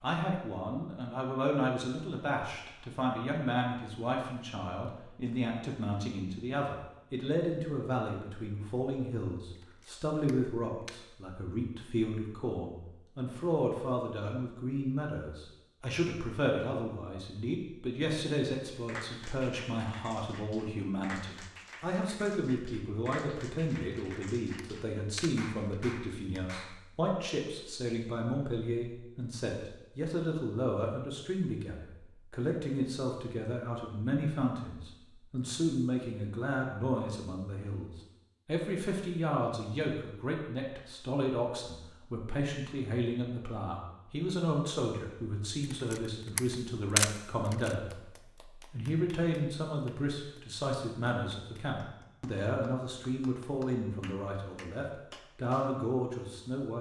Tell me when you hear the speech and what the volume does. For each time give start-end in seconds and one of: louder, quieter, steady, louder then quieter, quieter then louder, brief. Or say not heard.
0.0-56.7 steady.